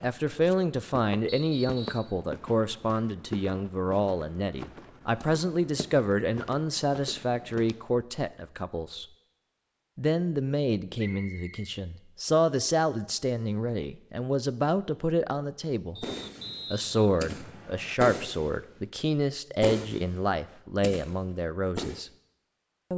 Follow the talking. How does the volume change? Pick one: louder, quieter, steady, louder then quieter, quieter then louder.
steady.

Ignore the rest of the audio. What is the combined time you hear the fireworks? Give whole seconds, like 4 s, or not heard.
5 s.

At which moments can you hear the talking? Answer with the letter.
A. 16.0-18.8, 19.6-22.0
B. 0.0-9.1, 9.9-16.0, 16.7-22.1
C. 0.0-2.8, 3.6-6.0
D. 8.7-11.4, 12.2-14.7
B.